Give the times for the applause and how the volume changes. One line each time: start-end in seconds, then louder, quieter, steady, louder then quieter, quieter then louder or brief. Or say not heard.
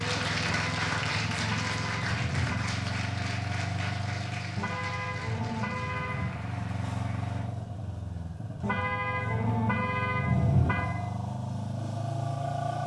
0.0-7.5 quieter.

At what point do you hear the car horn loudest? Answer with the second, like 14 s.
10 s.